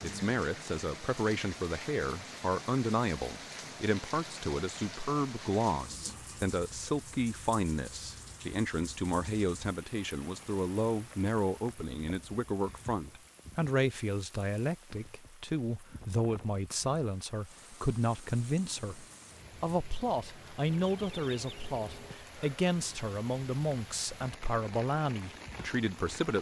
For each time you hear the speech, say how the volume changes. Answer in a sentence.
You can hear the speech from 0.0 to 26.3 s, at a steady volume.